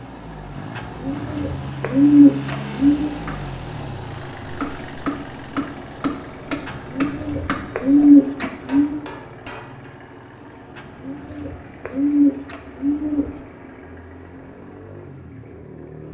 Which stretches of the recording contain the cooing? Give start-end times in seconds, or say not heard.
0.8-3.1, 6.7-9.0, 10.8-13.4.